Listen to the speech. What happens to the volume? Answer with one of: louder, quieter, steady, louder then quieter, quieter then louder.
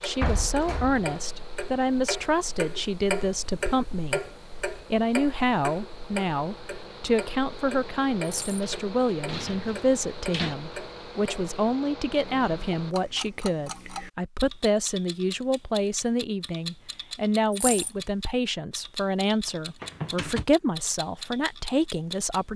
steady.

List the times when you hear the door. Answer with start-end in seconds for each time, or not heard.
0.2-1.1, 8.6-10.6, 19.8-20.4.